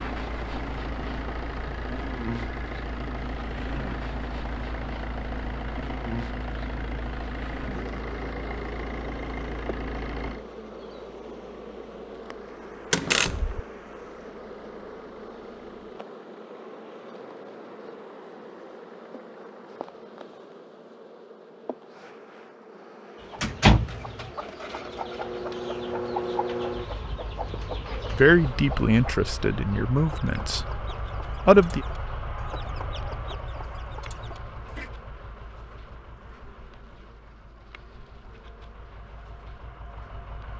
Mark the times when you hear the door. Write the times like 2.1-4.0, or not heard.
12.9-13.6, 23.4-24.3.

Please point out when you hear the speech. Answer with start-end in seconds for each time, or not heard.
28.1-30.8, 31.4-31.9.